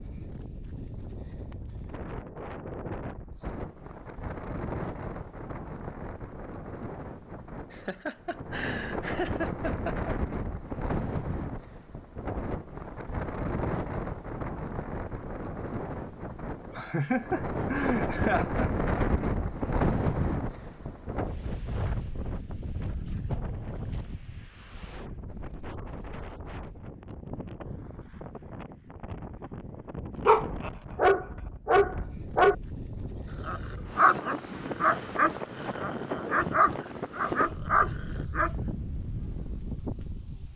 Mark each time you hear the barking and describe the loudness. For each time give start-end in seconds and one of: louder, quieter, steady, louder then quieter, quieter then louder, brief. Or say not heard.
30.2-38.8 quieter.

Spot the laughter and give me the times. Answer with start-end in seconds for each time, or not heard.
7.7-10.2, 16.8-18.7, 30.6-31.5.